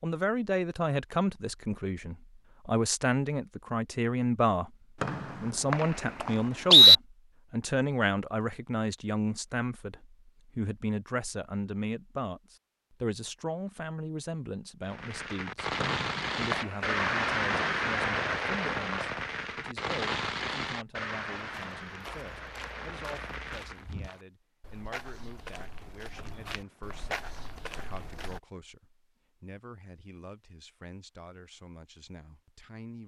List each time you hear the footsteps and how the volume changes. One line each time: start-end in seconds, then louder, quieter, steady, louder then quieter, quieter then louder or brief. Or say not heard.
21.4-28.4 louder.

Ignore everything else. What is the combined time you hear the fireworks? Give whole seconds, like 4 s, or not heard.
9 s.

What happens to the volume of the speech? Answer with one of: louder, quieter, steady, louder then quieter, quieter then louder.
quieter.